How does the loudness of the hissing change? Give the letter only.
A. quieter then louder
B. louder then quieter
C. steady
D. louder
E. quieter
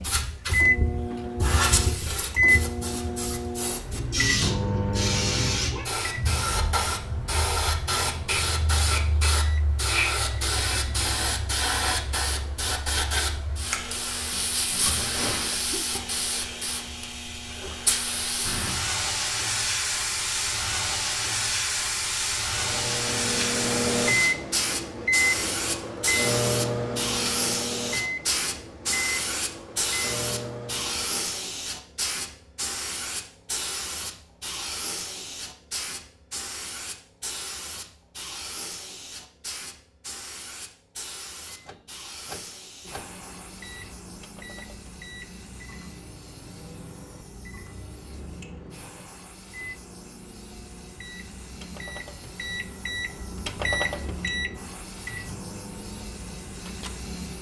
E.